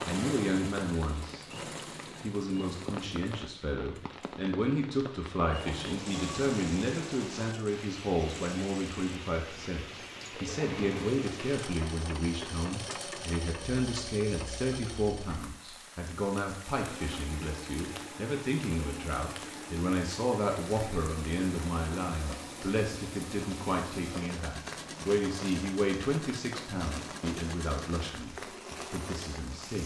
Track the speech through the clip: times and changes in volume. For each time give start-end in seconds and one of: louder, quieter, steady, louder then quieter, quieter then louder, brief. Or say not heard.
0.1-1.4 brief
2.2-29.8 steady.